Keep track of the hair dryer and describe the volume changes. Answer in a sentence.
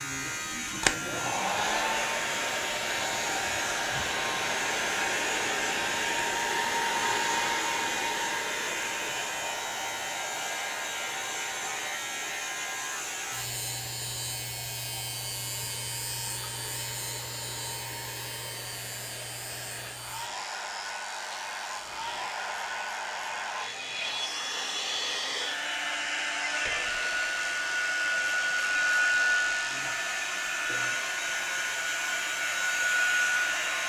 The loudness of the hair dryer goes down, then up.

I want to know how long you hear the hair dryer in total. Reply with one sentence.
The hair dryer can be heard for 34 seconds in total.